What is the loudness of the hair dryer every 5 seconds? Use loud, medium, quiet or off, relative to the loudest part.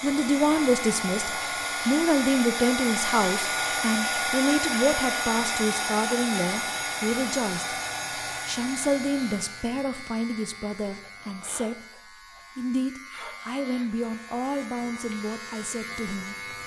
loud, loud, off, off.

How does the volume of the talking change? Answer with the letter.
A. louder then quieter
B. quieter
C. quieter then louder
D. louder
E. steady
B.